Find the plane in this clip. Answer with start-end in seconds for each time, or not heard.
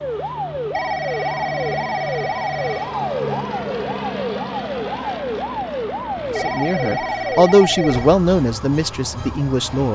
0.0-9.9.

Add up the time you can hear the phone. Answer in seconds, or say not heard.
4 s.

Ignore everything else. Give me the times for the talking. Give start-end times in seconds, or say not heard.
6.3-9.9.